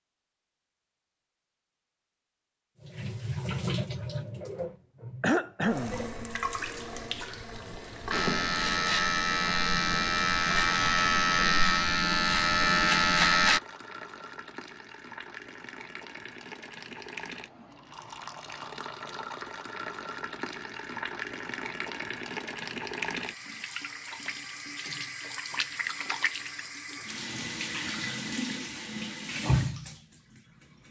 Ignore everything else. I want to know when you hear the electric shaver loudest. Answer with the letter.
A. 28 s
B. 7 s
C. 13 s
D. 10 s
C.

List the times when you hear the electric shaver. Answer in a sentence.
The electric shaver can be heard from 8.1 to 13.6 s.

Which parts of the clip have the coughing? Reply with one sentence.
You can hear the coughing from 5.2 to 6.0 s.